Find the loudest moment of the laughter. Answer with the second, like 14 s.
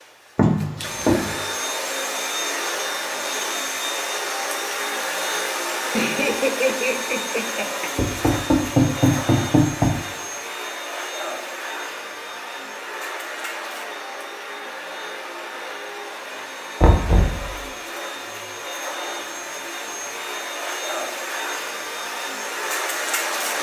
7 s.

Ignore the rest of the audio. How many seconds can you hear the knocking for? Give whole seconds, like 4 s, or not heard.
4 s.